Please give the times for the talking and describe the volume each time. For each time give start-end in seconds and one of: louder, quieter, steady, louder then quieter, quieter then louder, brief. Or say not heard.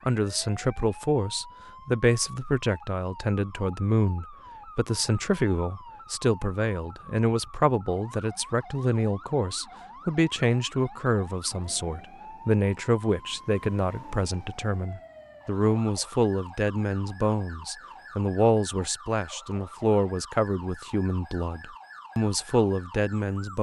0.1-23.5 steady.